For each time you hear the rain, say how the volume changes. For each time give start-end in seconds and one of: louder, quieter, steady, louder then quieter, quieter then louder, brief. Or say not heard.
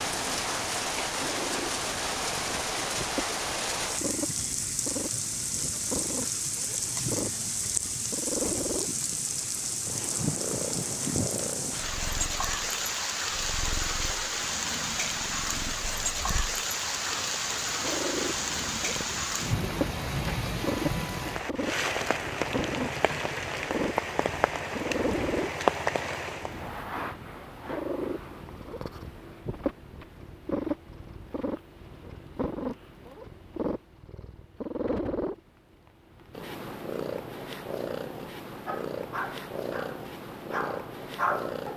0.0-26.7 steady.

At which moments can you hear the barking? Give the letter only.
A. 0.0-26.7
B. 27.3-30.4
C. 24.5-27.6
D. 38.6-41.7
D.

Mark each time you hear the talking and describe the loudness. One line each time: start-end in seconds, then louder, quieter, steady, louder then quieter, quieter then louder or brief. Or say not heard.
not heard.